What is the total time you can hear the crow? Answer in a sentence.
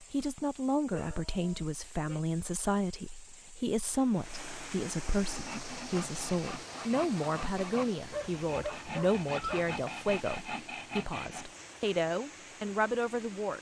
You can't hear the crow here.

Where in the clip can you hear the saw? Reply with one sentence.
You can hear the saw from 5.2 to 11.4 s.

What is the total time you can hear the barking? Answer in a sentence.
The barking can be heard for 3 seconds in total.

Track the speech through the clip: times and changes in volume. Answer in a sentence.
The speech can be heard from 0.0 to 13.5 s, at a steady volume.